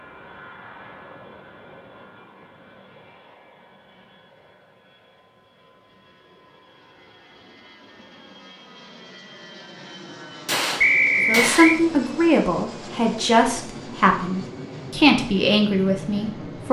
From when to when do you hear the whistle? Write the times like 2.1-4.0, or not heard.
10.8-11.8.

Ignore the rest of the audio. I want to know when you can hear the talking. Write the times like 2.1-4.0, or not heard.
11.2-16.6.